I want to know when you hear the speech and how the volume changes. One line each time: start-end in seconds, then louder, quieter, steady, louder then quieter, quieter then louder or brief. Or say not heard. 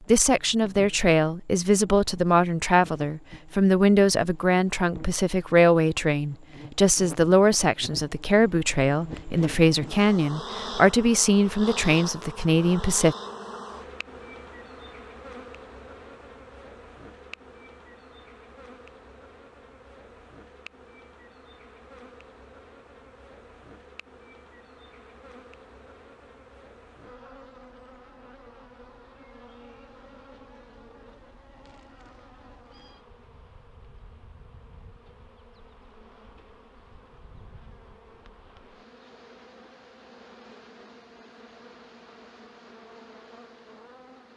0.1-13.2 steady.